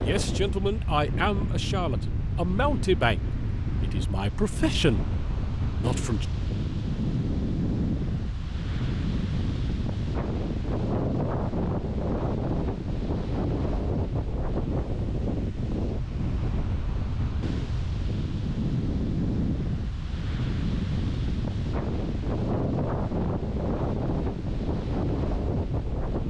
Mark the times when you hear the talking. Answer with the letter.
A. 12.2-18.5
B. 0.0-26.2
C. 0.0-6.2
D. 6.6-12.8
C.